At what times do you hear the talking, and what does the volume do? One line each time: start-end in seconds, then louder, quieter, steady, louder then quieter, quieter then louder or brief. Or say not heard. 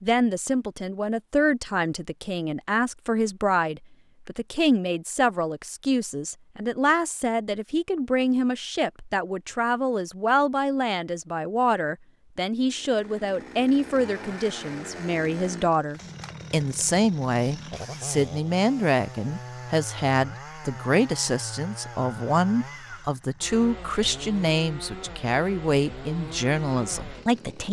0.0-27.6 steady.